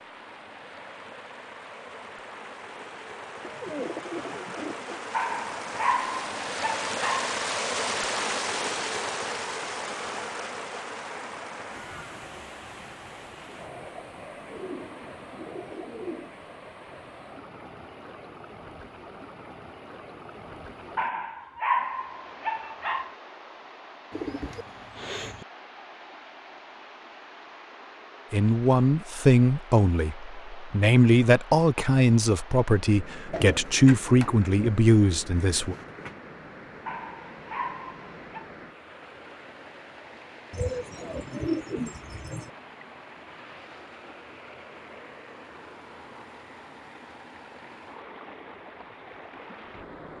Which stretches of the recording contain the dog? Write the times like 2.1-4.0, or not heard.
5.1-7.3, 20.9-23.1, 36.9-38.5.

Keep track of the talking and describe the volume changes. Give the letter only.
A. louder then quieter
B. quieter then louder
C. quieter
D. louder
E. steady
E.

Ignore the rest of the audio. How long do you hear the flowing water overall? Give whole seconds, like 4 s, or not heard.
50 s.